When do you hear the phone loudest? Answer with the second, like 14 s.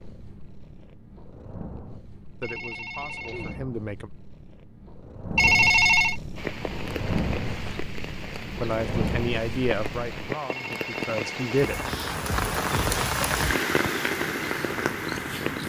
6 s.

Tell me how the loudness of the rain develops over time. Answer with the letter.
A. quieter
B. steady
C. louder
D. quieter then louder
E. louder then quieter
C.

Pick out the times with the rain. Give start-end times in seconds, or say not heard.
6.3-15.6.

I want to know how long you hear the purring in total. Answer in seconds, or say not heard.
14 s.